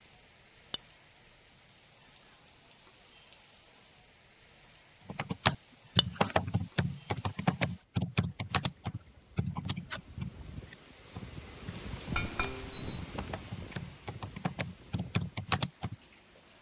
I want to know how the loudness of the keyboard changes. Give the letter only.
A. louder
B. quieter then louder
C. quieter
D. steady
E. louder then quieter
B.